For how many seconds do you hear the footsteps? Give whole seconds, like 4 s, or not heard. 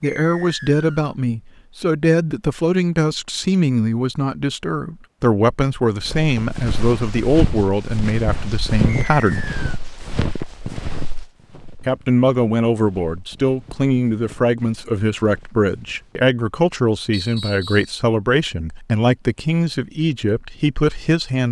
10 s.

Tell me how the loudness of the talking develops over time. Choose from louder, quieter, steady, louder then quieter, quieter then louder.
steady.